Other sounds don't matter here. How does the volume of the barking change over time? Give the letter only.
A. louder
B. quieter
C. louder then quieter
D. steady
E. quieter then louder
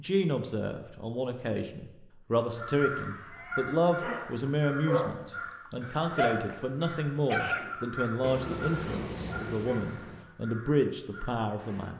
C.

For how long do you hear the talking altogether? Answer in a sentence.
You can hear the talking for 12 seconds altogether.